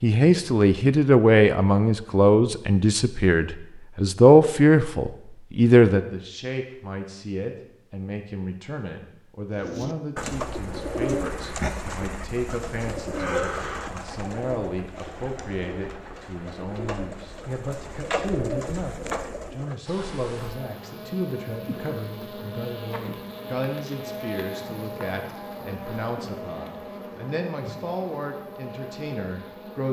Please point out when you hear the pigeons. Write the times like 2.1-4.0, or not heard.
9.6-19.8.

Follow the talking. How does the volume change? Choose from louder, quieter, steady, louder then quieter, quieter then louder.
quieter.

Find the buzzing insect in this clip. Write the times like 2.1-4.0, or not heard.
19.9-29.8.